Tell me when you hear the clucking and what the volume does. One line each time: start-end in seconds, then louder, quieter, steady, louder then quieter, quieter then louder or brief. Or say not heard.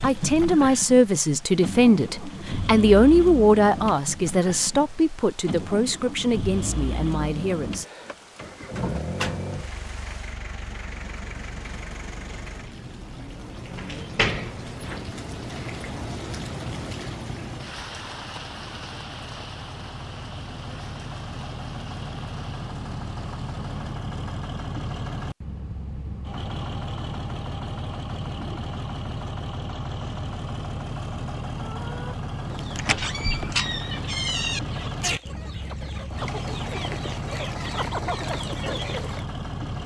31.6-39.2 louder.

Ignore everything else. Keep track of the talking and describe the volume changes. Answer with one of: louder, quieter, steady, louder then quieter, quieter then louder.
quieter.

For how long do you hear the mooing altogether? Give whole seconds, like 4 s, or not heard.
not heard.